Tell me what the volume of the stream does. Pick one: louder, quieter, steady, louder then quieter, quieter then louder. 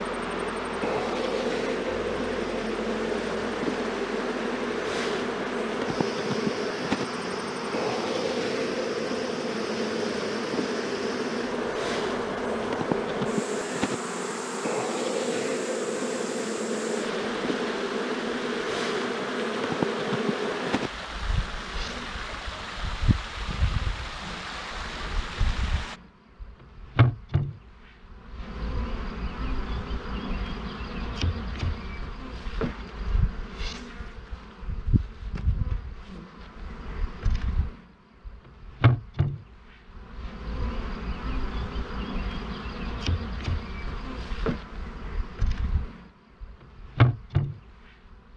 steady.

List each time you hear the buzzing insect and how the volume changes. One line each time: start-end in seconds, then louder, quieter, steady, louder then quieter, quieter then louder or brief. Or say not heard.
0.0-48.3 quieter then louder.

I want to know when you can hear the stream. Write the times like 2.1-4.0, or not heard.
0.0-26.0.